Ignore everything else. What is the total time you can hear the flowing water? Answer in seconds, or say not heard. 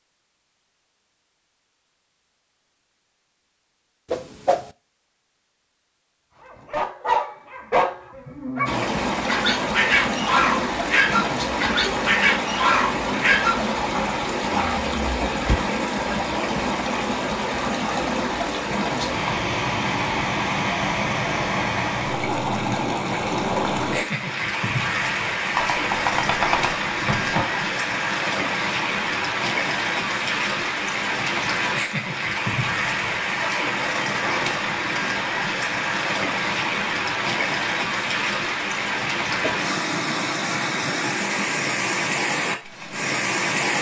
35 s.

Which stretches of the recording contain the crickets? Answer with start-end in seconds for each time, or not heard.
not heard.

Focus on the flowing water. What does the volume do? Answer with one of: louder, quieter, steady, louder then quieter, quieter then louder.
steady.